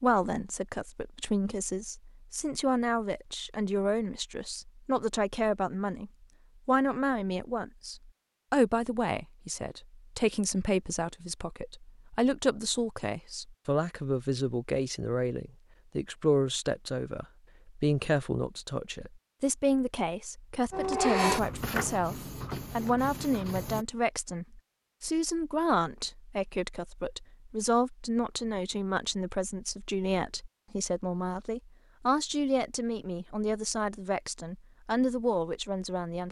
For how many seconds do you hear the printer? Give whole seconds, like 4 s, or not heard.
3 s.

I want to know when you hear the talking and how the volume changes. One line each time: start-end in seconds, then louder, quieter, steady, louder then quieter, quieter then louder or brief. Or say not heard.
0.0-36.2 steady.